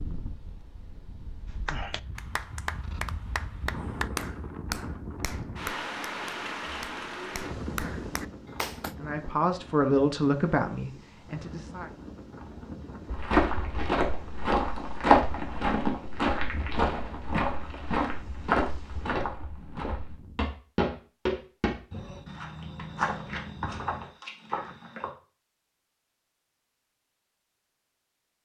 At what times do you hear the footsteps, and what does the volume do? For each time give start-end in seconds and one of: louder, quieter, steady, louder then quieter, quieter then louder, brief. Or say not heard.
13.1-25.1 quieter.